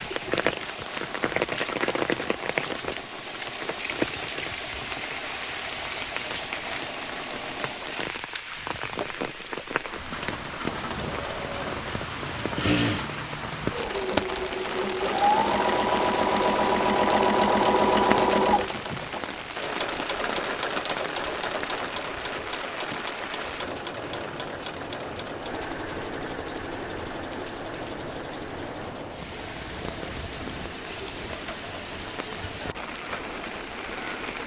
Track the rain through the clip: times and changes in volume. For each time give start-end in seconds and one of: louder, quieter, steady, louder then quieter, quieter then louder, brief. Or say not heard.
0.0-34.4 quieter.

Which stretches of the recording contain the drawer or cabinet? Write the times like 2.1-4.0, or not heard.
not heard.